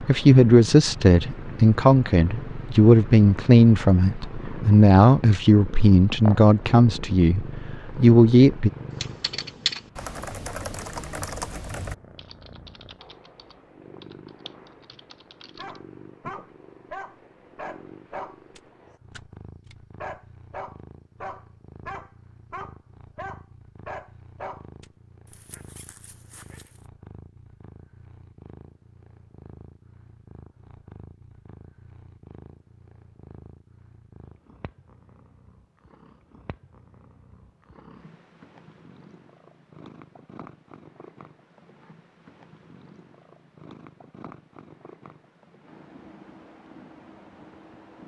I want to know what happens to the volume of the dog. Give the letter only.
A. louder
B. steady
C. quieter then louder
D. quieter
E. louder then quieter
D.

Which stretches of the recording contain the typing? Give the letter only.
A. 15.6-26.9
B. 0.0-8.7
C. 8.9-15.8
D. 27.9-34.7
C.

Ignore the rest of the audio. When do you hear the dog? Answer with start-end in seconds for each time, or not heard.
15.6-26.9.